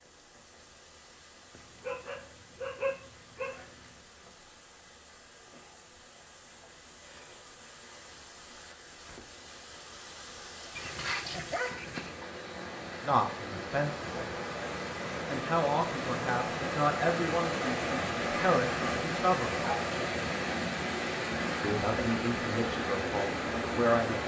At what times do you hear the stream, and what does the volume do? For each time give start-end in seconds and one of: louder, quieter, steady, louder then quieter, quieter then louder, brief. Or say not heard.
0.0-24.2 louder.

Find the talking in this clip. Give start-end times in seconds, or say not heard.
13.0-14.3, 15.2-19.6, 21.6-24.2.